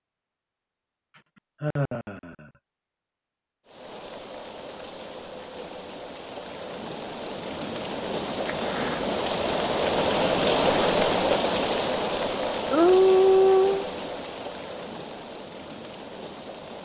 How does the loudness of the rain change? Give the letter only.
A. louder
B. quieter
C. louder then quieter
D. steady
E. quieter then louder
C.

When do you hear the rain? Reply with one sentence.
You can hear the rain from 3.6 to 16.8 s.